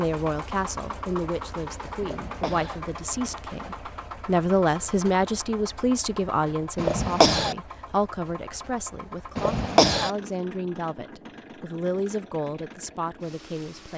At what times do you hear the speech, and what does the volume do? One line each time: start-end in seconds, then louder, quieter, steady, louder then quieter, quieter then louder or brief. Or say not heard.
0.0-13.9 louder then quieter.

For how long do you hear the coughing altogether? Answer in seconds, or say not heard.
2 s.